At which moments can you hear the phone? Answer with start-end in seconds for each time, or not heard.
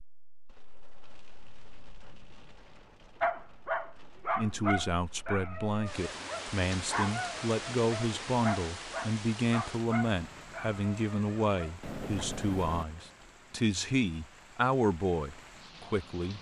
11.8-12.8.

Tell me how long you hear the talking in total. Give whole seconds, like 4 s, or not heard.
12 s.